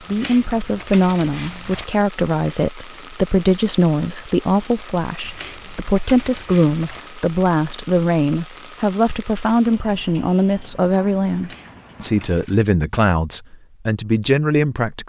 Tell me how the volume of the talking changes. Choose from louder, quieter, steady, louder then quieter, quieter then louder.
steady.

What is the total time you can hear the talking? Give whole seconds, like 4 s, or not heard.
15 s.